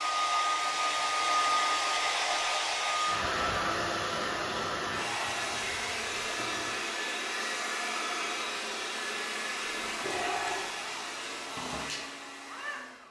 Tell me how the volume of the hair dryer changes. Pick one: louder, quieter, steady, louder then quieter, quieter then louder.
quieter.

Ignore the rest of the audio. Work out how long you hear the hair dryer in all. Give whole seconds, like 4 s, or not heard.
13 s.